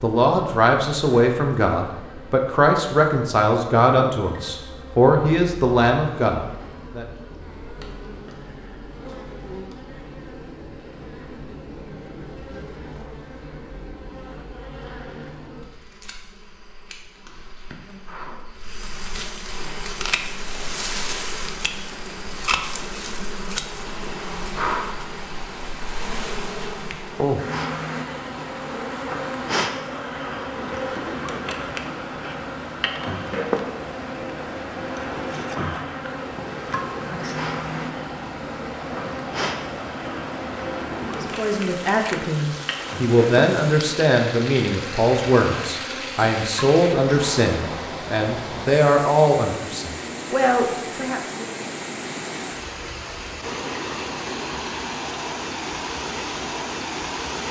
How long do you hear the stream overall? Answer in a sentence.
The stream can be heard for 38 seconds in total.